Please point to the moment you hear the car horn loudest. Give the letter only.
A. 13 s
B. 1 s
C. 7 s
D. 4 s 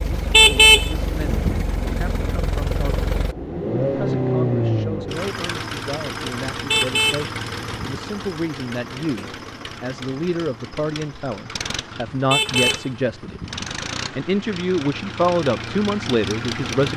B.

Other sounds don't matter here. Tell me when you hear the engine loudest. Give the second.
4 s.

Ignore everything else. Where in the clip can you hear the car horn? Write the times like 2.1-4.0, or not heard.
0.1-1.6, 6.5-8.0, 12.1-13.6.